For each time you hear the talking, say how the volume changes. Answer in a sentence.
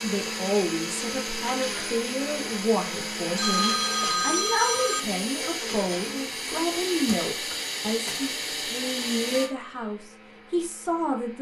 The talking can be heard from 0.0 to 11.3 s, at a steady volume.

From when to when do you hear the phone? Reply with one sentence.
You can hear the phone from 3.4 to 5.0 s.